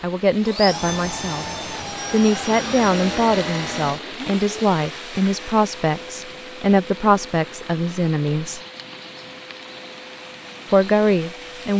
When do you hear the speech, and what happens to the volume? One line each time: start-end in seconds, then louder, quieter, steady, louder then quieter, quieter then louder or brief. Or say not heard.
0.0-1.4 brief
2.1-8.6 steady
10.7-11.7 brief.